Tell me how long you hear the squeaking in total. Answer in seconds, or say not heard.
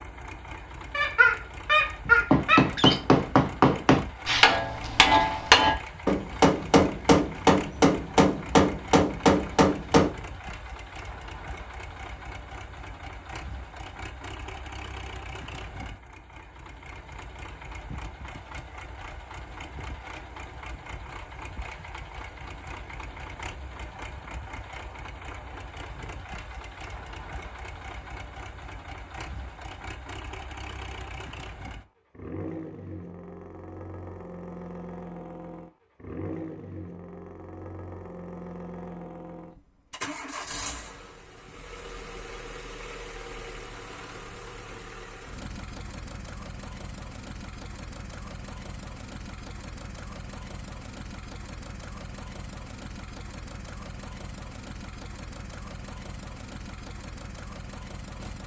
2 s.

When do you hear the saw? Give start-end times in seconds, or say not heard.
not heard.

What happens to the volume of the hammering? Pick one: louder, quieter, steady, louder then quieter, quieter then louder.
steady.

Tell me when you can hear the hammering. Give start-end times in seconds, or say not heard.
2.3-10.1.